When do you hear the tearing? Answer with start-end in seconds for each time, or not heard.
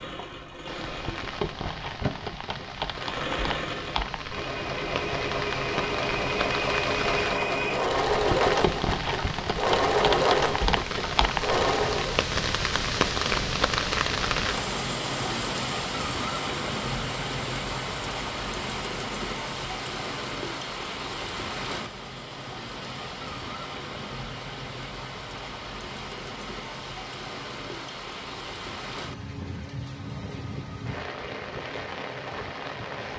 2.0-2.7.